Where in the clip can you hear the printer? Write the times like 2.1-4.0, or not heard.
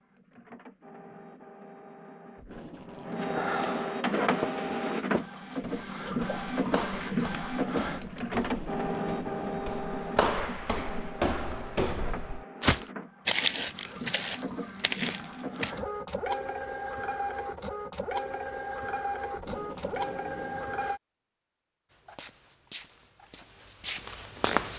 0.0-21.0.